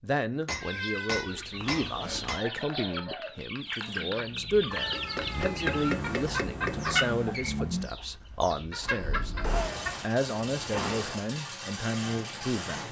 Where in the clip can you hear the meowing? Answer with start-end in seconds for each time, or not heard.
0.6-2.4, 4.7-6.0, 8.9-9.9.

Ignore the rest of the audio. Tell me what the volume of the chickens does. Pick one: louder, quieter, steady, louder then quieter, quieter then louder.
louder then quieter.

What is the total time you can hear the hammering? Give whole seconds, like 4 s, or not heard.
6 s.